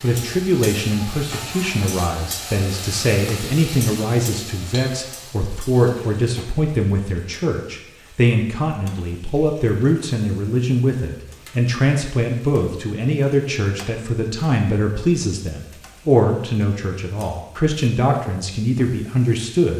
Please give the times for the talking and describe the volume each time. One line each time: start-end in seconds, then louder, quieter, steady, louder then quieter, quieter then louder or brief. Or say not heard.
0.0-19.7 steady.